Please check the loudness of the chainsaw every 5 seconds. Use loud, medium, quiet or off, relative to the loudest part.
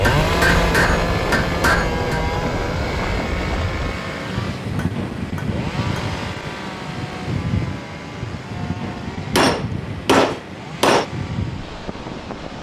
loud, medium, quiet.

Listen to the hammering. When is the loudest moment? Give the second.
10 s.